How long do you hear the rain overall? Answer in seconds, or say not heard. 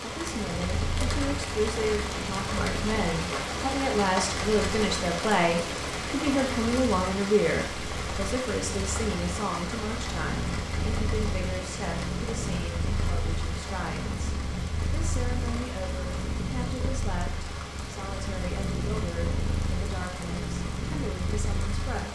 22 s.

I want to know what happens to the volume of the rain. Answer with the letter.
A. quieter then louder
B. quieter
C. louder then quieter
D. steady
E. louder
B.